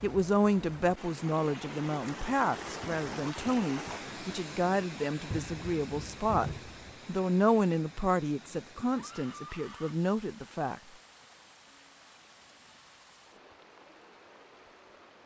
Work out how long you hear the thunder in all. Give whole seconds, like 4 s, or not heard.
2 s.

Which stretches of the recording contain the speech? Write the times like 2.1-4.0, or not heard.
0.0-10.8.